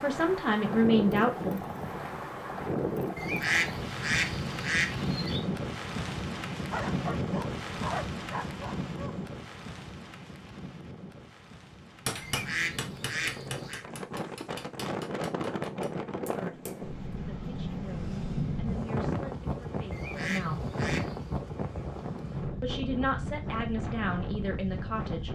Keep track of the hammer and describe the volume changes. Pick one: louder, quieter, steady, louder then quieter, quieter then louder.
quieter.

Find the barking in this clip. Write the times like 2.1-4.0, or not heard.
6.7-9.2.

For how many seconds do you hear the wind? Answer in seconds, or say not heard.
25 s.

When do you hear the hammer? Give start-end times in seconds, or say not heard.
12.1-16.9.